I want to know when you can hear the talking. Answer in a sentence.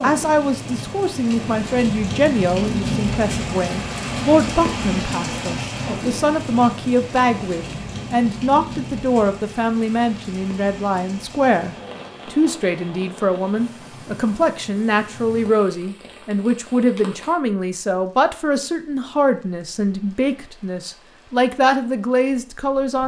The talking can be heard from 0.0 to 23.0 s.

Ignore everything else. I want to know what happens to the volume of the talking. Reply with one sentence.
The volume of the talking stays about the same.